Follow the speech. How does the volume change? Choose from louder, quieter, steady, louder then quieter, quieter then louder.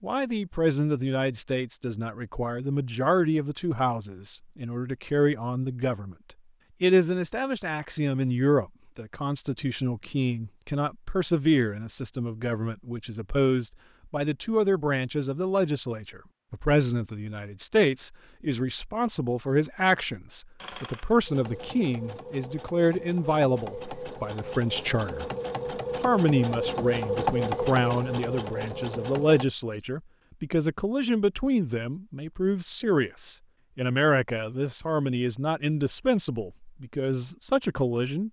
steady.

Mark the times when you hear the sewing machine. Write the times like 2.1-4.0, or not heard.
20.6-29.4.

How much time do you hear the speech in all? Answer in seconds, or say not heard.
37 s.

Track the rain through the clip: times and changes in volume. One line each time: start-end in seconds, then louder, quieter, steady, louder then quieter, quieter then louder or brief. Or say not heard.
not heard.